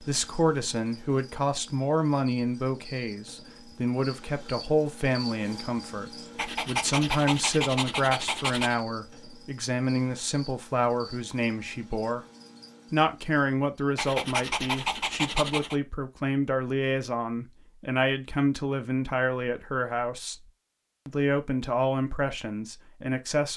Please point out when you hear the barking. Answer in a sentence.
The barking can be heard from 6.3 to 8.8 s and from 13.9 to 15.8 s.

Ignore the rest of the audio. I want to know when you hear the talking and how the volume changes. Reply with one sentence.
You can hear the talking from 0.0 to 12.2 s, at a steady volume; and from 12.9 to 23.5 s, at a steady volume.